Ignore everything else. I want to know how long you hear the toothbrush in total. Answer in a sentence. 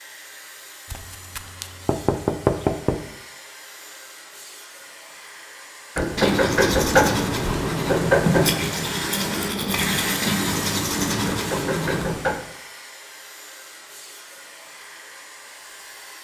You can hear the toothbrush for 6 seconds altogether.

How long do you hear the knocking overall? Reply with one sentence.
You can hear the knocking for 6 seconds altogether.